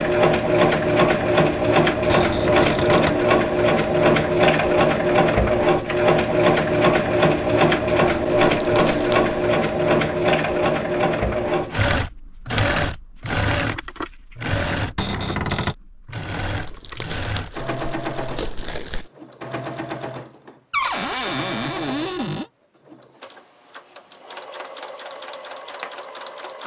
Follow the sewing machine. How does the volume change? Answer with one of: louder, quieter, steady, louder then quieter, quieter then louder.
quieter.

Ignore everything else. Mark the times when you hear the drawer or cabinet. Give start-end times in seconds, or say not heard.
2.0-3.2, 14.9-15.8, 20.7-22.5.